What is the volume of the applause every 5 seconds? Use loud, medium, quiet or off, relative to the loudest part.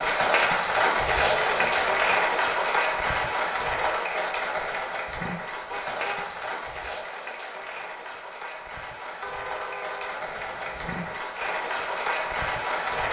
loud, medium, medium.